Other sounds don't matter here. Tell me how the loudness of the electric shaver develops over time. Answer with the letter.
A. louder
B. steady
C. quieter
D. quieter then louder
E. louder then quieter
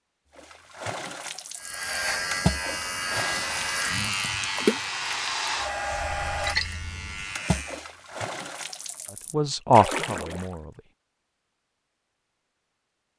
C.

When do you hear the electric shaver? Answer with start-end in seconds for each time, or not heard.
1.6-7.8.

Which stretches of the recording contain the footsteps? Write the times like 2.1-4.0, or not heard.
not heard.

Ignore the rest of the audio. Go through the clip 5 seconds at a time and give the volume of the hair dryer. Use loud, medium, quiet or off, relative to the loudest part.
medium, loud, off.